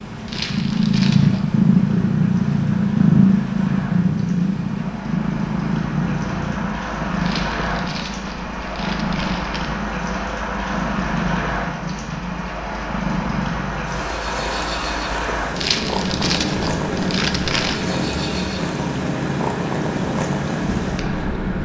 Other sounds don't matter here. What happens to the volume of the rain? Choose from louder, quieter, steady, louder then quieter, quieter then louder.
louder.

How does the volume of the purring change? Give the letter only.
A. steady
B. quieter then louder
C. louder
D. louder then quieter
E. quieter
E.